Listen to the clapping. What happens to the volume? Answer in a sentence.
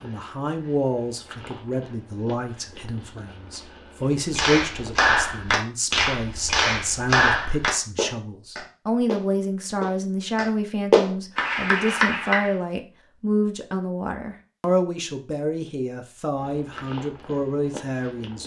The volume of the clapping goes down, then up.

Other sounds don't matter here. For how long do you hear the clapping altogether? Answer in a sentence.
You can hear the clapping for 8 seconds altogether.